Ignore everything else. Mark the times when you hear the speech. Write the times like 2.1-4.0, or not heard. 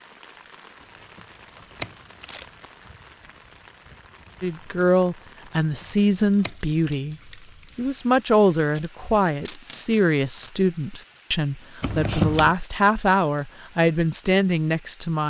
4.4-7.2, 7.8-15.2.